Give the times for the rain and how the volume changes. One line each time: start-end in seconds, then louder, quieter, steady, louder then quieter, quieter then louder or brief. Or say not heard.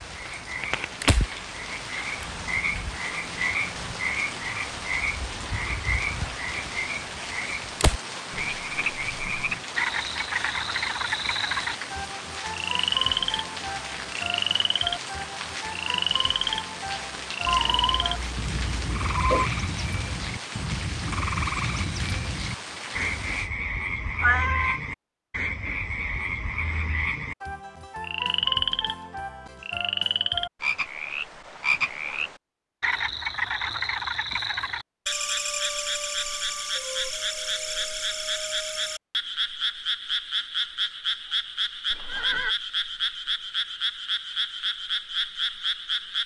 0.0-23.5 steady.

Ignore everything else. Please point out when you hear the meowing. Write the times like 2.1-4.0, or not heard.
17.4-19.5, 24.2-24.8.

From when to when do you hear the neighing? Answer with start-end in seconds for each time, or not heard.
41.9-42.5.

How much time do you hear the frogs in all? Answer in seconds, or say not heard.
46 s.